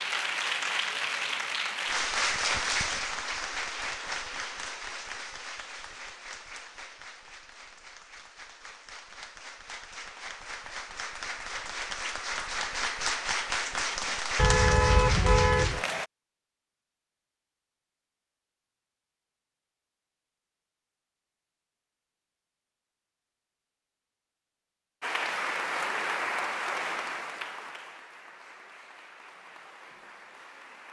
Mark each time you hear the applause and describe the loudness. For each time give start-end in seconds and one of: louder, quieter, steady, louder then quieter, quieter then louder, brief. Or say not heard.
0.0-16.1 quieter then louder
25.0-30.8 quieter.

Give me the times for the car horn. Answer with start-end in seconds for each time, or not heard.
14.3-15.8.